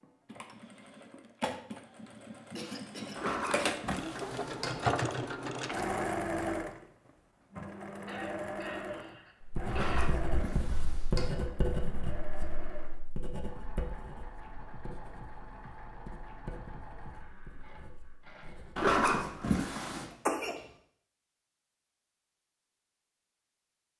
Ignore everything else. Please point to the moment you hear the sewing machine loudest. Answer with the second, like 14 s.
5 s.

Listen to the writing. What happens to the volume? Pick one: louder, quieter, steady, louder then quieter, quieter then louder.
quieter.